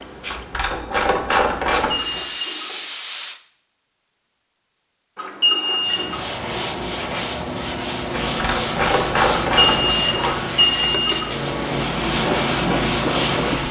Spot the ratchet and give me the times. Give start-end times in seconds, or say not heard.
0.3-2.2, 8.3-10.4.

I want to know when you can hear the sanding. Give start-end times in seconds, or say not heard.
5.8-13.6.